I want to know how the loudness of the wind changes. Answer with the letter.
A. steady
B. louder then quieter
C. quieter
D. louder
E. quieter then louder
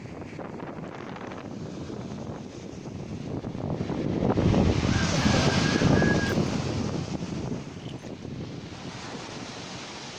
B.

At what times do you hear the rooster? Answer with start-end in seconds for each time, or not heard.
4.3-6.3.